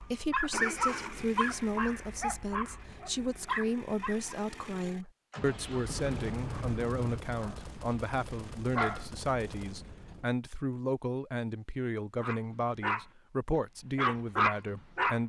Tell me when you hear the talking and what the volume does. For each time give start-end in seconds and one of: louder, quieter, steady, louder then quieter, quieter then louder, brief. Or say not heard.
0.0-15.2 steady.